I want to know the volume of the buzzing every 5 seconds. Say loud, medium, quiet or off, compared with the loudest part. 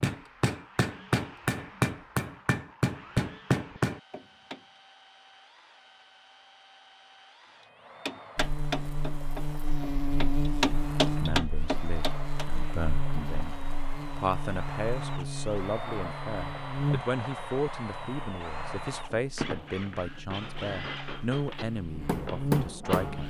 off, loud, loud, loud, loud.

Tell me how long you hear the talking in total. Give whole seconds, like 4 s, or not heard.
12 s.